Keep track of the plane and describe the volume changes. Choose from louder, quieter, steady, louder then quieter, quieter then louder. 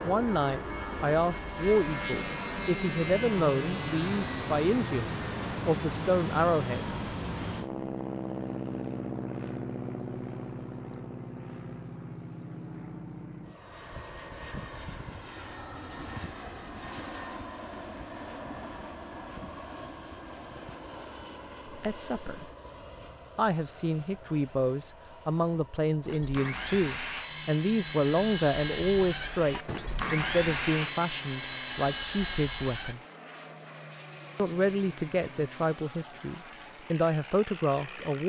quieter.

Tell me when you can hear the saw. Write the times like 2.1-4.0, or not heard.
26.0-33.0.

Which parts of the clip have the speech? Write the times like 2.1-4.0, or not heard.
0.0-7.0, 21.7-22.4, 23.4-33.0, 34.4-38.2.